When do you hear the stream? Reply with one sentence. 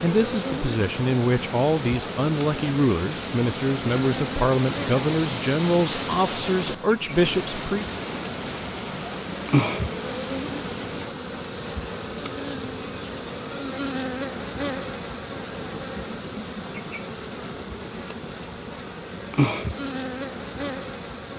You can hear the stream from 0.0 to 11.1 s.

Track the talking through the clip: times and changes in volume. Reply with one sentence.
The talking can be heard from 0.0 to 7.8 s, at a steady volume.